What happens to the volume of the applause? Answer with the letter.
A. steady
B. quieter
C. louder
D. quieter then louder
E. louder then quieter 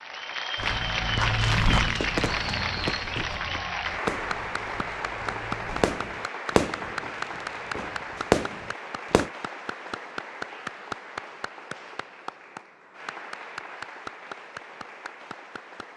B.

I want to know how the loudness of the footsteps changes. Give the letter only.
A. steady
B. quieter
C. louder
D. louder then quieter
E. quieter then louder
B.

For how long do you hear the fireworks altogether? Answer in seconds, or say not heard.
8 s.